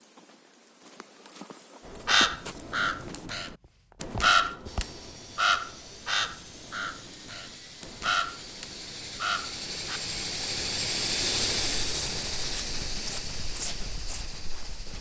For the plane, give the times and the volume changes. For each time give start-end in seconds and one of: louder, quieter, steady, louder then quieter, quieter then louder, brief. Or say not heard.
4.7-14.9 louder then quieter.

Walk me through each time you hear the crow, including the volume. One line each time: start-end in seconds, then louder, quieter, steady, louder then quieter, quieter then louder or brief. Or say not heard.
2.0-10.0 louder then quieter.